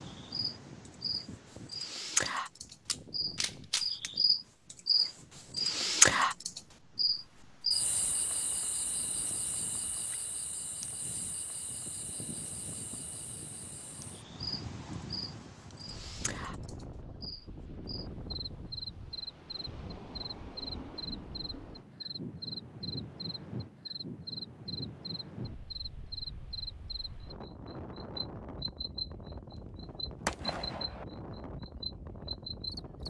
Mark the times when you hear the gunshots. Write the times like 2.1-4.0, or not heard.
2.2-4.1, 29.5-31.1.